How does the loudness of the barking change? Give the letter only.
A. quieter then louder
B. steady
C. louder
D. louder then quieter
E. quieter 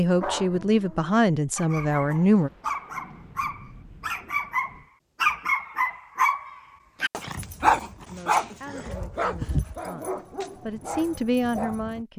D.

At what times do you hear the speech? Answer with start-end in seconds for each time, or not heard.
0.0-2.5, 8.1-12.1.